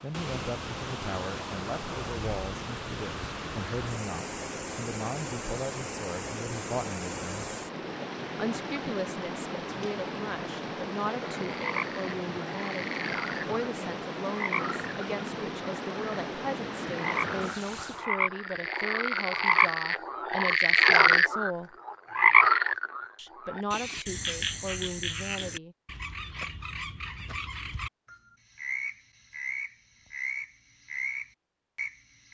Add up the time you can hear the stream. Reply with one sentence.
You can hear the stream for 18 seconds altogether.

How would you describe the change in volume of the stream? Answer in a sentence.
The volume of the stream stays about the same.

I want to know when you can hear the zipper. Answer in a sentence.
You can't hear the zipper here.